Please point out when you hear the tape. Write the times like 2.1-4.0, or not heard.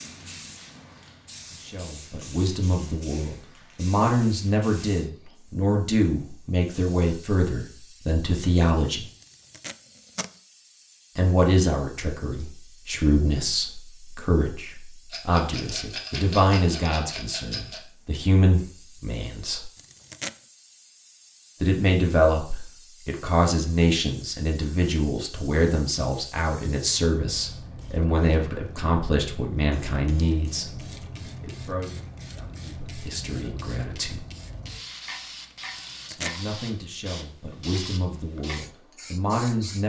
9.2-10.3, 19.8-20.4, 35.8-36.5.